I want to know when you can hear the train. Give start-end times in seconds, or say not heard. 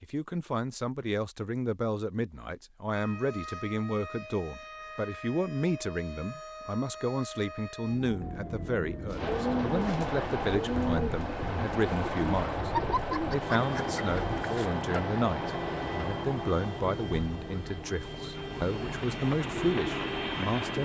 9.1-20.8.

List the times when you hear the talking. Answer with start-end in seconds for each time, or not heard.
0.0-12.7, 13.3-20.8.